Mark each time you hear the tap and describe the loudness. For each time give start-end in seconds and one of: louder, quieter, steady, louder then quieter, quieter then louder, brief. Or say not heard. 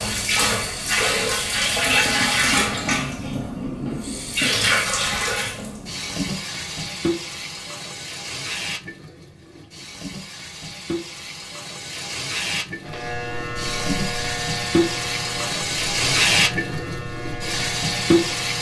0.0-18.5 quieter then louder.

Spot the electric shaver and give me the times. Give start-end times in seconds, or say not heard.
12.8-18.5.